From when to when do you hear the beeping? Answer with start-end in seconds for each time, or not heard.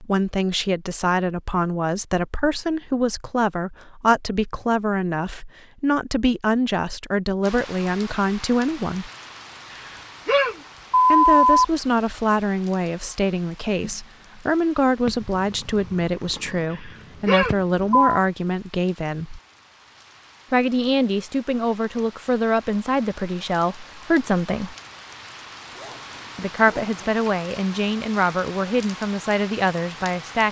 9.7-11.7, 16.7-17.9.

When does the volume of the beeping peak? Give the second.
11 s.